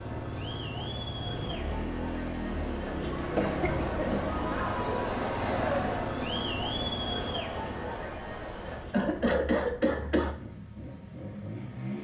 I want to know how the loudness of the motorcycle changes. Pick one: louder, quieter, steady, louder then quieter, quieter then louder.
quieter.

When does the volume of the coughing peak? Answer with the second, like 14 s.
9 s.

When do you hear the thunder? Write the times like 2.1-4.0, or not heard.
not heard.